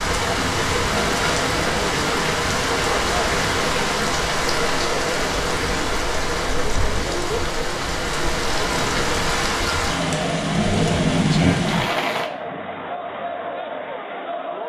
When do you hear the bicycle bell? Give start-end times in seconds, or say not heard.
not heard.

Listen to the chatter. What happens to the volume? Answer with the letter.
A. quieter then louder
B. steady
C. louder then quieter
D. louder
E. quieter
B.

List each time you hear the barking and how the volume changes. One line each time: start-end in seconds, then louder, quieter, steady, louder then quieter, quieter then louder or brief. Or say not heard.
not heard.